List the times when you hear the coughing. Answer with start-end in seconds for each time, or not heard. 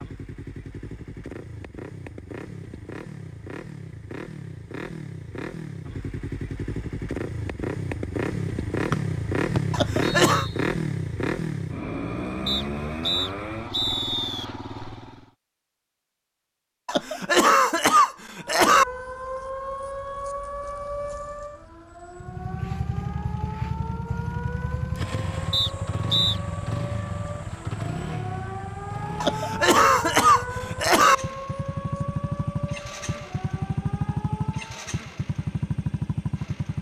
9.7-10.4, 16.9-18.9, 29.2-31.1.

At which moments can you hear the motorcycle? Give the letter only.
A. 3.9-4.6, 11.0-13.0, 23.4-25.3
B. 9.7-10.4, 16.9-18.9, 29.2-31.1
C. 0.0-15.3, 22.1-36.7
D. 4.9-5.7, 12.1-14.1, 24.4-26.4
C.